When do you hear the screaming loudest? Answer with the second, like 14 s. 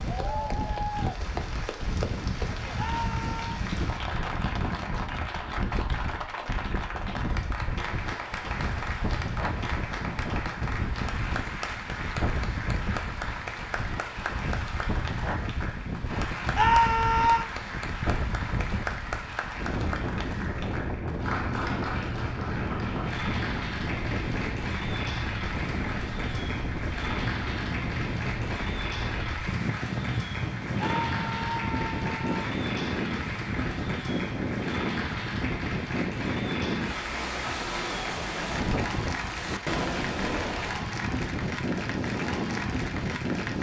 17 s.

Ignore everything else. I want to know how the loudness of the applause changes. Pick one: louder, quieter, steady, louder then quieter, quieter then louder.
steady.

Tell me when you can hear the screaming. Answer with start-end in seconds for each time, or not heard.
2.8-3.5, 16.6-17.5, 30.8-32.5.